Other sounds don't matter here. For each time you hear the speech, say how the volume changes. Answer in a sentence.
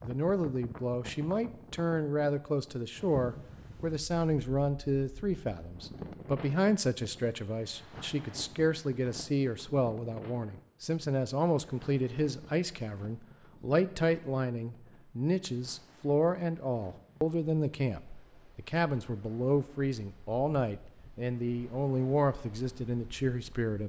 The speech can be heard from 0.0 to 23.8 s, at a steady volume.